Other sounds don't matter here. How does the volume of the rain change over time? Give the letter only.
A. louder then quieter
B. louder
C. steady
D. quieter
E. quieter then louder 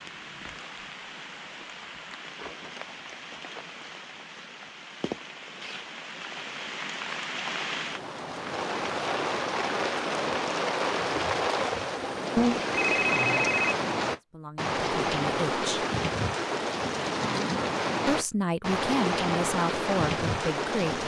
B.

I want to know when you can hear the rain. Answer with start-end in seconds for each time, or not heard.
0.0-21.0.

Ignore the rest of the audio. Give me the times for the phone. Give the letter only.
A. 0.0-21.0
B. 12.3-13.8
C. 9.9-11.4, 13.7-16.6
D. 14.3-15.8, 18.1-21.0
B.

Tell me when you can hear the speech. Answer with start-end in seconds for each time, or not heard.
14.3-15.8, 18.1-21.0.